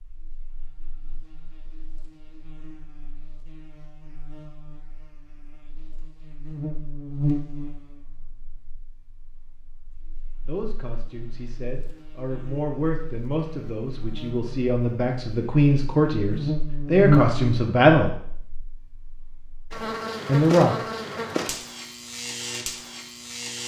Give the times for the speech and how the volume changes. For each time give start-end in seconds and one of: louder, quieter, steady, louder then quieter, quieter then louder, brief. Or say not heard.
10.4-18.1 louder
20.2-20.8 brief.